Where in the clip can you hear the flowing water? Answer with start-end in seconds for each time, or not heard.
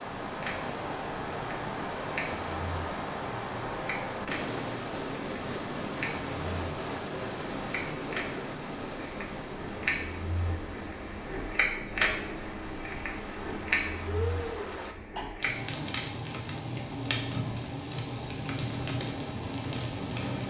0.0-14.9.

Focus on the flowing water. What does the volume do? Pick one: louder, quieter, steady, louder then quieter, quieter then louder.
quieter.